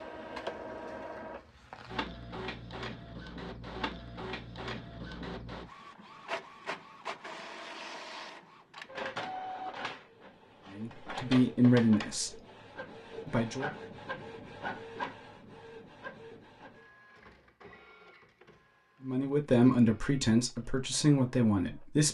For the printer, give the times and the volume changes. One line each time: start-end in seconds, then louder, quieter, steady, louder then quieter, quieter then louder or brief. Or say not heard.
0.0-22.0 quieter.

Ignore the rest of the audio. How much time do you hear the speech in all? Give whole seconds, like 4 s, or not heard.
5 s.